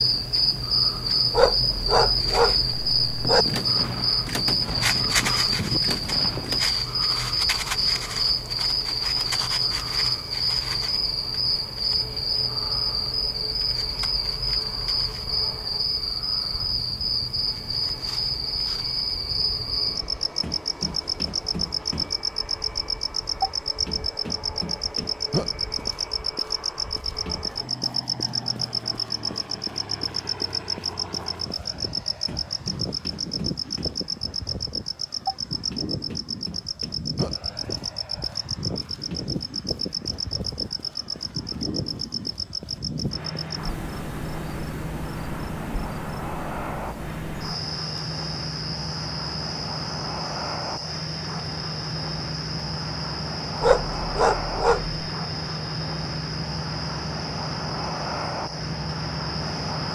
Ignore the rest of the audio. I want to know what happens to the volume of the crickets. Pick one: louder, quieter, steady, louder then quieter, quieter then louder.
quieter.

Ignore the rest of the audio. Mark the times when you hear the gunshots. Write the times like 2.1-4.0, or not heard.
3.2-6.7.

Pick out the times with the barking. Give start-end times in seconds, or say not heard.
1.3-3.5, 53.6-55.0.